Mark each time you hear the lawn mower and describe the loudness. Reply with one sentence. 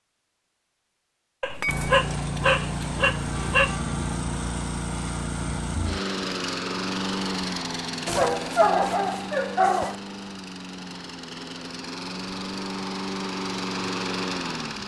You can hear the lawn mower from 1.6 to 14.8 s, getting quieter then louder.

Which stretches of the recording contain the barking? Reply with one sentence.
You can hear the barking from 1.4 to 3.8 s and from 8.1 to 9.9 s.